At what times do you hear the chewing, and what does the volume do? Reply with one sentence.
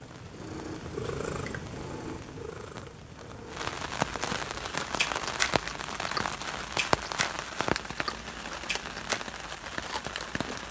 The chewing can be heard from 4.5 to 10.6 s, getting quieter.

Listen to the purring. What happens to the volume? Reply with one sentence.
The volume of the purring goes down.